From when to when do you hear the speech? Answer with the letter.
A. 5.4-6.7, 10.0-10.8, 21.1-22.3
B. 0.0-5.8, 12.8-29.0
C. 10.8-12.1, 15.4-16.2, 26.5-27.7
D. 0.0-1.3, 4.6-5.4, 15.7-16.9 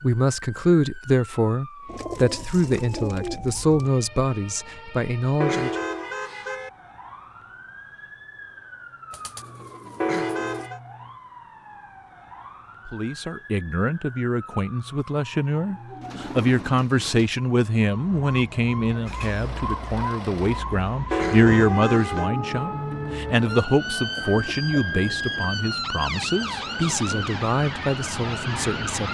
B.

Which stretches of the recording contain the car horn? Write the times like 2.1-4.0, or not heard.
5.4-6.7, 10.0-10.8, 21.1-22.3.